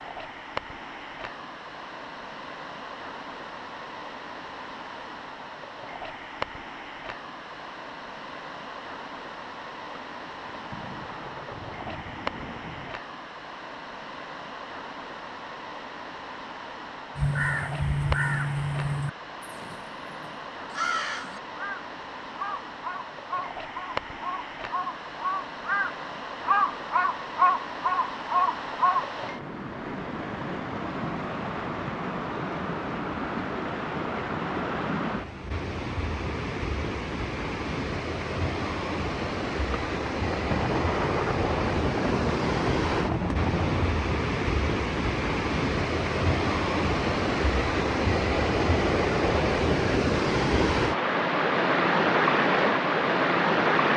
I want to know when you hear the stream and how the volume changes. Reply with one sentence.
The stream can be heard from 0.0 to 53.9 s, getting louder.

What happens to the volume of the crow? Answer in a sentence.
The volume of the crow goes down, then up.